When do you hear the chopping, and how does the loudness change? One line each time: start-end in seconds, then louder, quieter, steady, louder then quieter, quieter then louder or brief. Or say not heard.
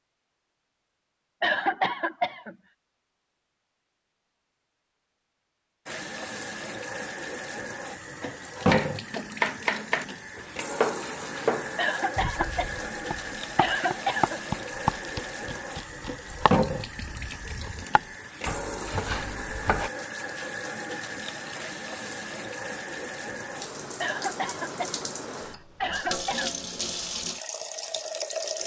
8.2-19.9 quieter.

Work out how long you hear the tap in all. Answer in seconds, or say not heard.
23 s.